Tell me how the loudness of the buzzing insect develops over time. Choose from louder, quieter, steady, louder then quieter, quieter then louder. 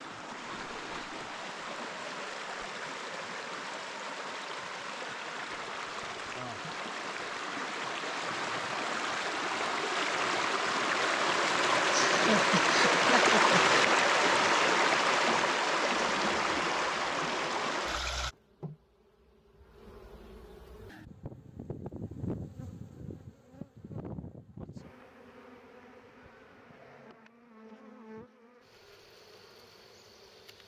louder then quieter.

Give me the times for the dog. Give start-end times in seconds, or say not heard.
not heard.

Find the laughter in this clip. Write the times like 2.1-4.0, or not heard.
11.9-13.6.